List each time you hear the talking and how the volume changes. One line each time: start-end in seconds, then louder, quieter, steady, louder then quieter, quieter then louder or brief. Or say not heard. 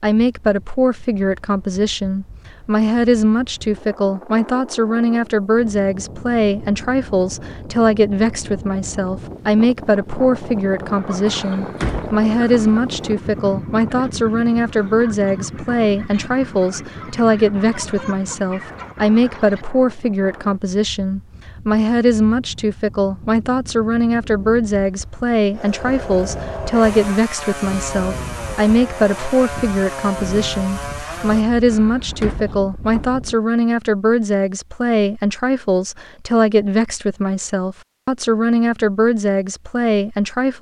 0.0-40.5 steady.